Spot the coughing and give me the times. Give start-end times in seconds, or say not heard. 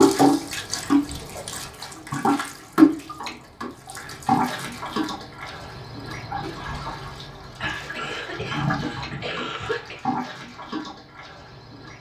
7.5-10.1.